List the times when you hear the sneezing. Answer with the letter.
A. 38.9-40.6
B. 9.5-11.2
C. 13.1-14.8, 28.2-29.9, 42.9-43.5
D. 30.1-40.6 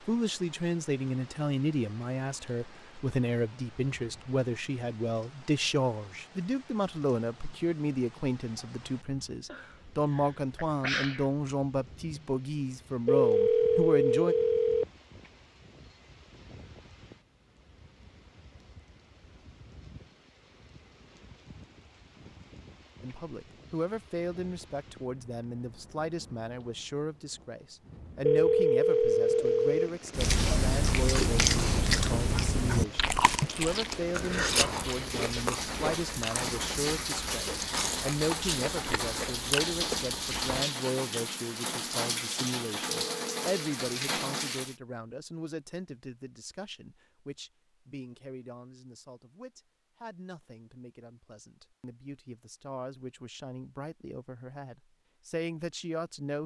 B.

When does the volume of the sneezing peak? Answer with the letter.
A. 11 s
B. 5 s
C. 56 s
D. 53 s
A.